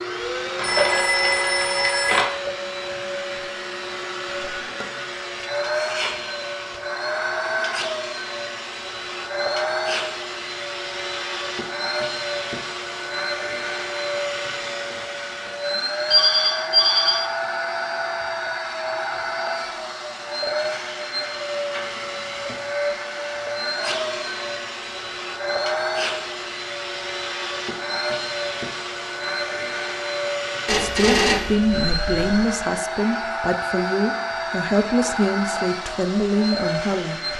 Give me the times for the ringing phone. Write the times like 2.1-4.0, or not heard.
0.6-2.2, 16.1-17.2, 30.6-32.5.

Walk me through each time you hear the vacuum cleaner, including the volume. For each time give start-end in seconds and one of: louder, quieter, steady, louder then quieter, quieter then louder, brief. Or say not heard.
0.0-37.3 steady.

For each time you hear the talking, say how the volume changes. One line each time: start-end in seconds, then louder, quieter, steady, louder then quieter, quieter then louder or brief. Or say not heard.
30.8-37.3 steady.